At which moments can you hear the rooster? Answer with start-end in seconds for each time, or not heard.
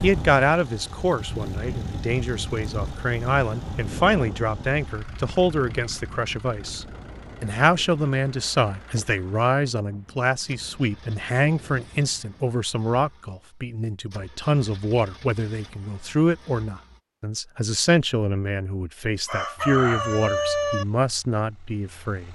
19.2-20.9.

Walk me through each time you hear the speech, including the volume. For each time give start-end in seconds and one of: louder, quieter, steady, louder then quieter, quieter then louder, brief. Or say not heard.
0.0-22.2 steady.